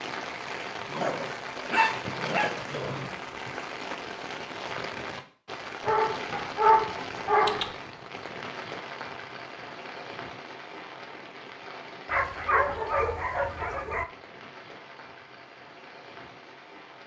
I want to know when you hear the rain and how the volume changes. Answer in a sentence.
The rain can be heard from 0.0 to 17.0 s, getting quieter.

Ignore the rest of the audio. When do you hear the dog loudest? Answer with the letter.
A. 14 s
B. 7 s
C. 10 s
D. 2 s
B.